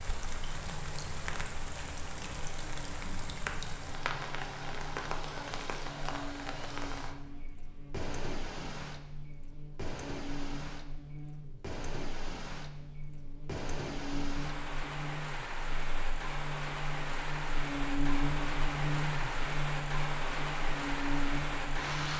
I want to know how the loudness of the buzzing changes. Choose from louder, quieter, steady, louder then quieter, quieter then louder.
louder.